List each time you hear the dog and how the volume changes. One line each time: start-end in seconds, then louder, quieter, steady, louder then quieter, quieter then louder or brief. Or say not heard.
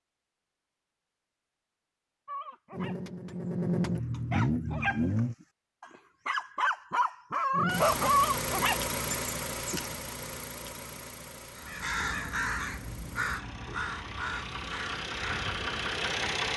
2.2-9.8 louder.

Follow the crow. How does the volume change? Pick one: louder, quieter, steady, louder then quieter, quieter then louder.
quieter.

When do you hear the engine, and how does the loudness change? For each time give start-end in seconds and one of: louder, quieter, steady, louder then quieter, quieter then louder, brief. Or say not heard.
2.7-5.3 brief
7.5-16.5 quieter then louder.